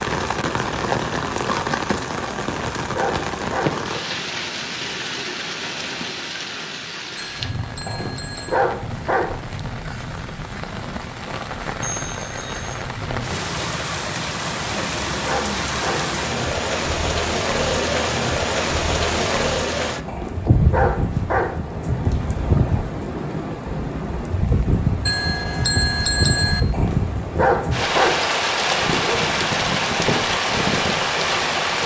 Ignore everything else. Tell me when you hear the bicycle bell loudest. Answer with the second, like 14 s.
26 s.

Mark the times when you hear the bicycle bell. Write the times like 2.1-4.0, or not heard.
7.2-8.6, 11.8-12.7, 25.1-26.6.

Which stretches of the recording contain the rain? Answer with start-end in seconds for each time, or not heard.
0.0-31.8.